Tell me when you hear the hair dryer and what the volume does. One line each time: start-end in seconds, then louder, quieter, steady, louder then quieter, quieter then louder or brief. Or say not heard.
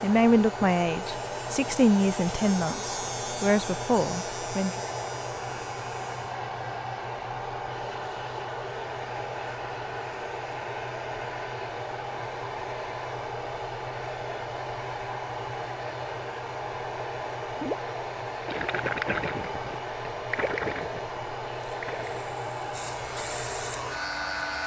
0.0-24.6 steady.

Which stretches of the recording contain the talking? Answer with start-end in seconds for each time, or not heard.
0.0-4.8.